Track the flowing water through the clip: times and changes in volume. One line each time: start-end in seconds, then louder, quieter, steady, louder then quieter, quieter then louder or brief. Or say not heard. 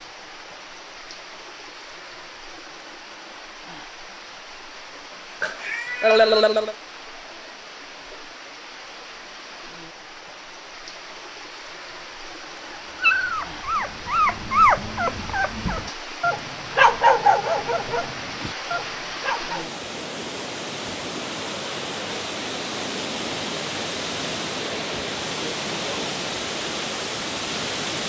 0.0-28.0 louder.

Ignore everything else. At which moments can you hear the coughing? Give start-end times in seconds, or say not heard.
5.4-6.8.